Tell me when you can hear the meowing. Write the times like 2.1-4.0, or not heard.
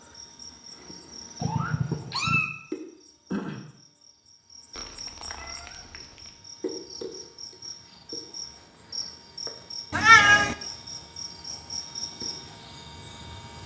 1.4-2.5, 4.8-6.3, 9.9-10.6.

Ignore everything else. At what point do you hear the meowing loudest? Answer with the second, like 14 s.
10 s.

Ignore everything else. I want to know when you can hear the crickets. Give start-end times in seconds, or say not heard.
0.0-13.6.